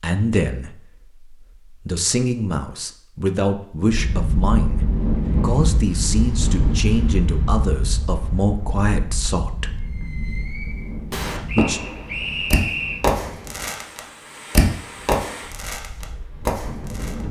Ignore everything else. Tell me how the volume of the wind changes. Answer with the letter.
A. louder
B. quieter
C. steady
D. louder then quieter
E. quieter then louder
B.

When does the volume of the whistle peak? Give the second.
13 s.